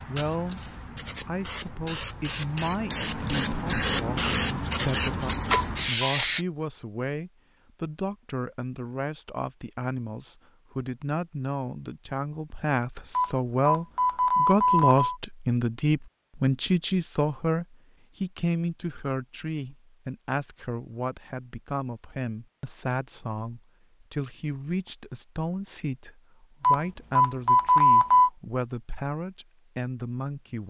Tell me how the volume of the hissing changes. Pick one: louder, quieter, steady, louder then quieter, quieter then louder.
louder.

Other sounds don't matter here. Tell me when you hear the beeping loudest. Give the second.
28 s.